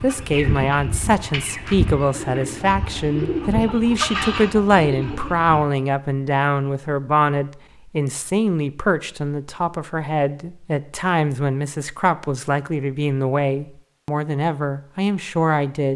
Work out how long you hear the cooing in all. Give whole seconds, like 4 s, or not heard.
6 s.